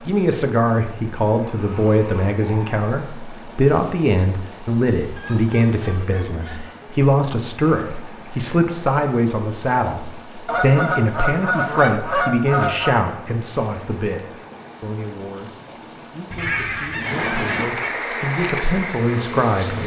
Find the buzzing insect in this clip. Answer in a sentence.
The buzzing insect can be heard from 17.9 to 19.8 s.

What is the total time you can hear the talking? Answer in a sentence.
The talking can be heard for 20 seconds in total.